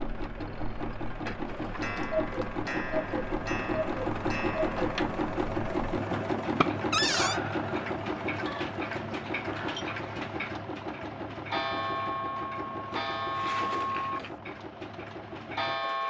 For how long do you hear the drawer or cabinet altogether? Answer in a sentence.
The drawer or cabinet can be heard for 3 seconds in total.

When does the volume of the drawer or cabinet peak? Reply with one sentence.
The volume of the drawer or cabinet peaks at 7 seconds.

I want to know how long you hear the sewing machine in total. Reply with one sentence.
The sewing machine can be heard for 16 seconds in total.